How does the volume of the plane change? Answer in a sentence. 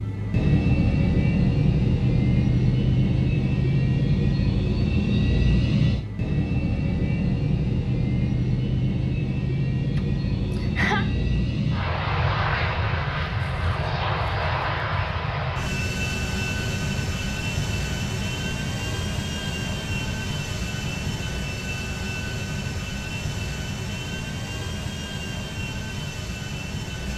The volume of the plane goes down.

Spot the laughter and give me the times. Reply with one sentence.
You can hear the laughter from 9.9 to 11.1 s.